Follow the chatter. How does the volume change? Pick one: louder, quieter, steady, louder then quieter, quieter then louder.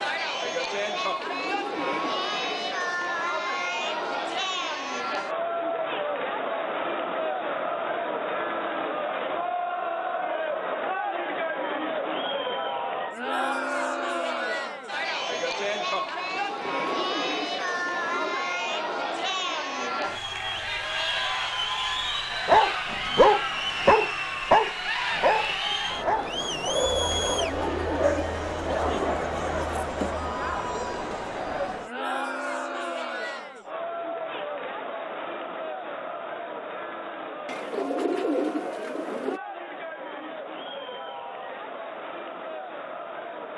quieter.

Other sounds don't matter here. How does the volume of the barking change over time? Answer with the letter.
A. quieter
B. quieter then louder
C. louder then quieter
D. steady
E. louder
A.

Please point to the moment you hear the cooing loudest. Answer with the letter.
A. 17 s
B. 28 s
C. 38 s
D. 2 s
C.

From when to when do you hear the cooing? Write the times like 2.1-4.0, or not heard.
1.0-2.8, 16.4-18.4, 27.2-29.1, 37.5-39.4.